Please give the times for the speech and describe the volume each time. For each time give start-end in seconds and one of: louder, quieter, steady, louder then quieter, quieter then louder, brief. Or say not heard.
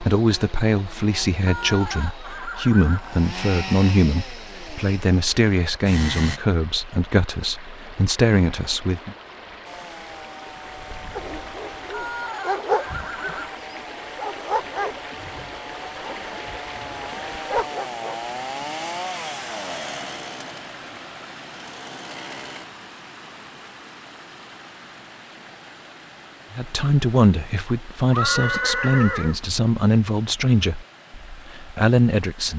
0.0-9.2 steady
26.5-32.5 steady.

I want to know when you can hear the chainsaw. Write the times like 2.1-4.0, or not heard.
0.0-6.4, 9.7-22.6.